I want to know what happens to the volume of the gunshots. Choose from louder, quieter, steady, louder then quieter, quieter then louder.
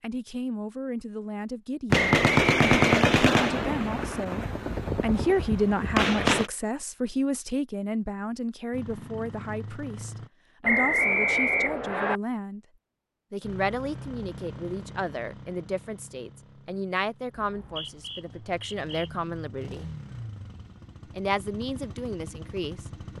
quieter then louder.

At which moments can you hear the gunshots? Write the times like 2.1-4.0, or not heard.
1.9-6.5.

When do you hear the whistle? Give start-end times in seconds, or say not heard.
1.9-3.5, 10.7-12.2, 17.4-19.1.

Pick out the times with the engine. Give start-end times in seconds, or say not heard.
8.7-10.3, 13.4-23.1.